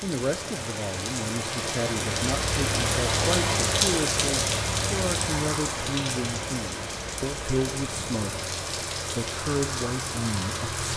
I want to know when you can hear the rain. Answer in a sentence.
The rain can be heard from 0.0 to 10.9 s.